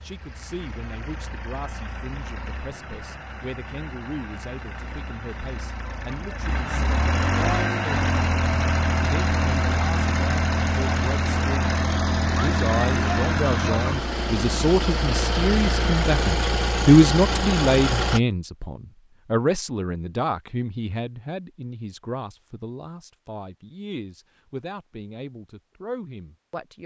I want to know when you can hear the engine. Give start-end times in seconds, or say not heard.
0.0-18.2.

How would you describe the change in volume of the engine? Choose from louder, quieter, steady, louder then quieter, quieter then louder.
louder.